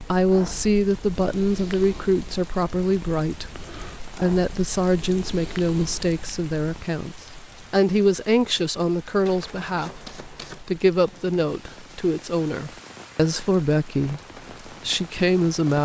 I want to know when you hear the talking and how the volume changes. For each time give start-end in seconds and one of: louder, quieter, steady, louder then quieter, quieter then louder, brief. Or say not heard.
0.0-15.8 steady.